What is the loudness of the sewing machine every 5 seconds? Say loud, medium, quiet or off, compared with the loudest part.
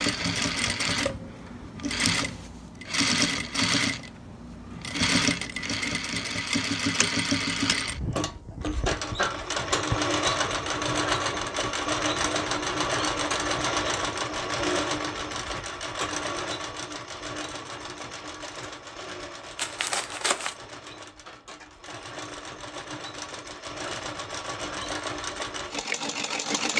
loud, loud, loud, medium, medium, loud.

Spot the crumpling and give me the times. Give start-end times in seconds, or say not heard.
19.6-20.6.